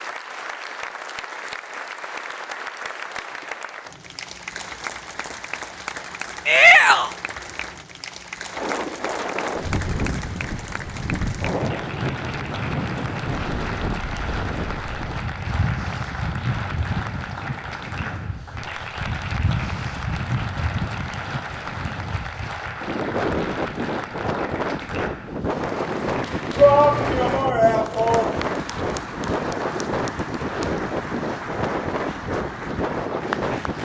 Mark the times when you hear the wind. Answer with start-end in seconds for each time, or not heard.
8.5-33.8.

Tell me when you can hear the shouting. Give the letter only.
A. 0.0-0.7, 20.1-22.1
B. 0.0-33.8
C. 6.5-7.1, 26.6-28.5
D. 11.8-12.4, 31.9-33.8
C.